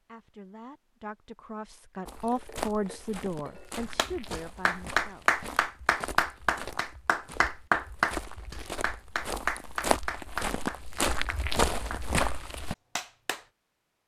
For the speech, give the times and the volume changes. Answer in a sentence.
You can hear the speech from 0.1 to 5.4 s, getting louder then quieter.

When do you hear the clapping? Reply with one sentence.
You can hear the clapping from 4.0 to 12.2 s and from 12.9 to 13.4 s.